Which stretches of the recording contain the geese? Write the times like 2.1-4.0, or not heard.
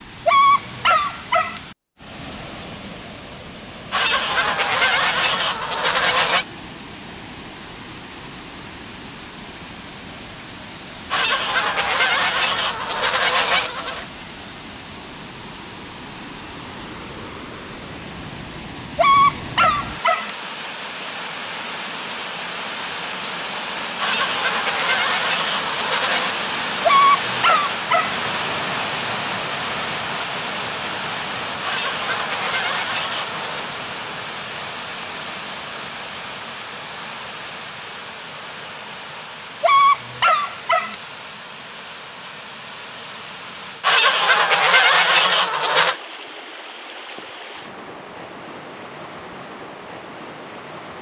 3.9-6.5, 11.1-14.1, 23.9-26.4, 31.6-33.7, 43.8-46.0.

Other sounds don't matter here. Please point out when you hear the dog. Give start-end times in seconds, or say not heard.
0.2-1.6, 18.9-20.3, 26.9-28.2, 39.6-41.0.